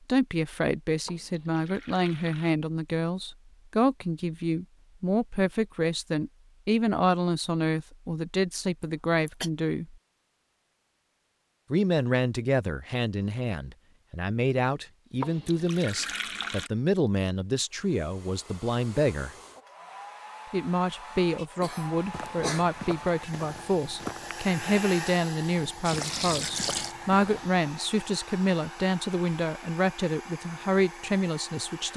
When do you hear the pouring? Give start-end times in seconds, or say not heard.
1.1-2.5, 15.2-16.7, 25.8-26.9.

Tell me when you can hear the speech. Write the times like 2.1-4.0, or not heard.
0.1-9.9, 11.7-19.3, 20.5-31.9.